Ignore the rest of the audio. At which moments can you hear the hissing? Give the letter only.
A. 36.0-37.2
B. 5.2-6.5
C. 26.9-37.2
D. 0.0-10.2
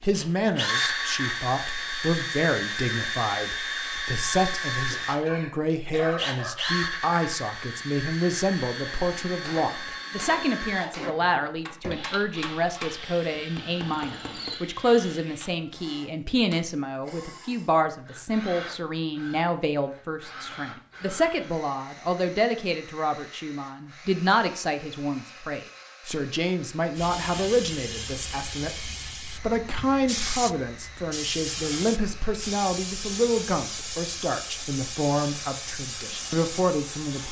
C.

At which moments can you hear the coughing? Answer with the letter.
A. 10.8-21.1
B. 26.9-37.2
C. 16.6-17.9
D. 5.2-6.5
D.